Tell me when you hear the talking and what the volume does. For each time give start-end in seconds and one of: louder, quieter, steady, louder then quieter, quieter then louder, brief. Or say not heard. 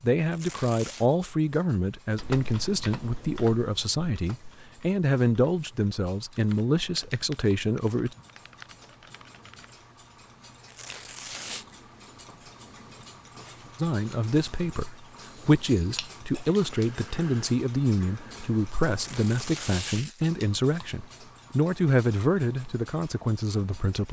0.0-8.2 steady
13.8-24.0 steady.